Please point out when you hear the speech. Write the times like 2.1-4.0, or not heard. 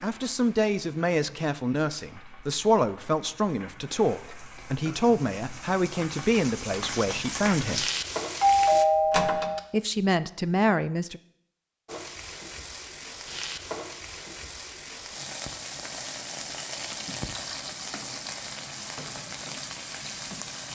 0.0-7.8, 9.7-11.2.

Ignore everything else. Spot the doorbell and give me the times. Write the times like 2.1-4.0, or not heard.
8.4-9.6.